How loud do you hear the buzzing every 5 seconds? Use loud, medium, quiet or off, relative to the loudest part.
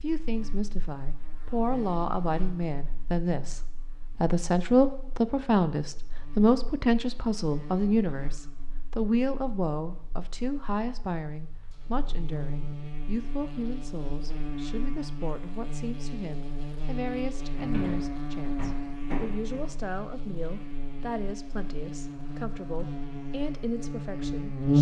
quiet, quiet, medium, medium, loud.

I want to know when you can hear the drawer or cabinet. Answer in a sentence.
You can hear the drawer or cabinet from 17.6 to 19.9 s.